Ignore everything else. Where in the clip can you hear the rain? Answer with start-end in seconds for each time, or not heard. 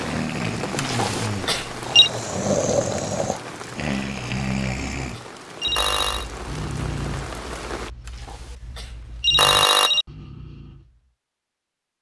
0.0-7.9.